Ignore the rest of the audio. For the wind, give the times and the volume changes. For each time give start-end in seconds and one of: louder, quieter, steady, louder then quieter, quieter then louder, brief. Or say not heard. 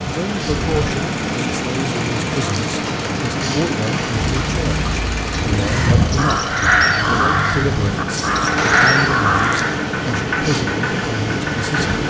0.0-12.0 steady.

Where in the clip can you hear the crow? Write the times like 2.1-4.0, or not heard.
4.1-9.8.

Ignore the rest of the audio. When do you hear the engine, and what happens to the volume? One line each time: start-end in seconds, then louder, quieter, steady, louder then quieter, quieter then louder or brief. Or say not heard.
0.0-12.0 steady.